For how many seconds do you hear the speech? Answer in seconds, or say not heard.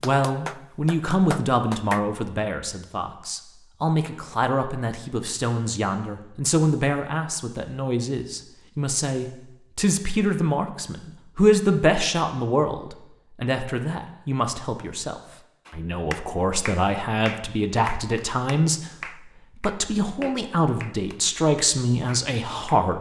22 s.